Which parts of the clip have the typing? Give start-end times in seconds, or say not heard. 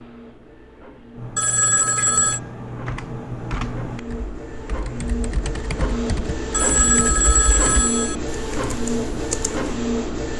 1.1-9.7.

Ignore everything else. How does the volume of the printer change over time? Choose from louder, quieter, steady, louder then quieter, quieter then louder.
louder.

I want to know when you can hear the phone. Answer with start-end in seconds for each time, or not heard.
1.4-2.4, 6.5-8.2.